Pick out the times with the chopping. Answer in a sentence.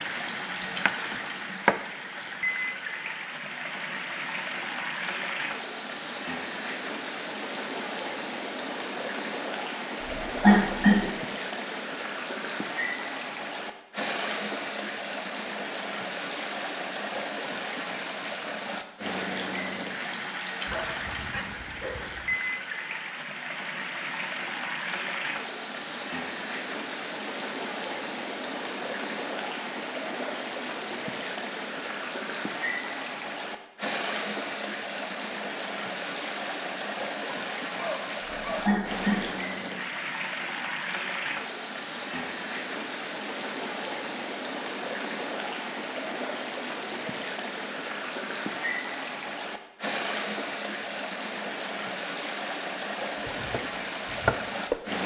You can hear the chopping from 0.0 to 1.9 s and from 53.2 to 55.0 s.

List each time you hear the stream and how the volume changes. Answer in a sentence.
The stream can be heard from 0.0 to 55.0 s, at a steady volume.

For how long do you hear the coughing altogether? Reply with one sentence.
You can hear the coughing for 2 seconds altogether.